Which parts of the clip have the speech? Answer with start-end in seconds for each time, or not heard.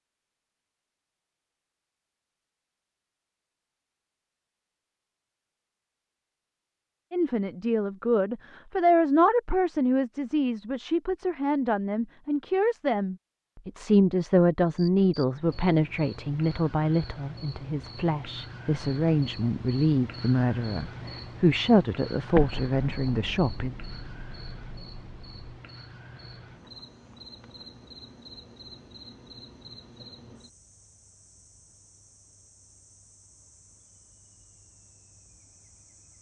7.1-23.8.